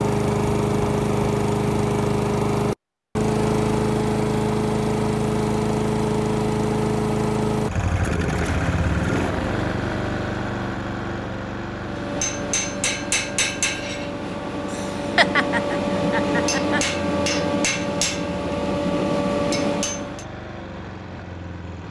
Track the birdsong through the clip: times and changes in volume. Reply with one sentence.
You can't hear the birdsong here.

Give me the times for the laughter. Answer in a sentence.
You can hear the laughter from 14.7 to 16.9 s.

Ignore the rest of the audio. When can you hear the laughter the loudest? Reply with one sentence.
The loudest moment of the laughter is at 15 seconds.